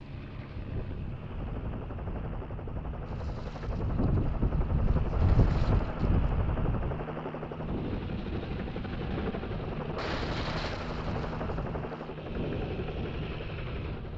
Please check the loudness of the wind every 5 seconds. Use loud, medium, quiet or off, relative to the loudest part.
loud, loud, medium.